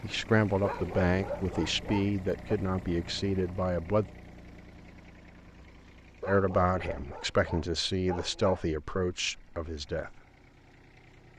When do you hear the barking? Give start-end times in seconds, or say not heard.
0.6-2.5, 6.2-8.7.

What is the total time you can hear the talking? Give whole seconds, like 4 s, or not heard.
8 s.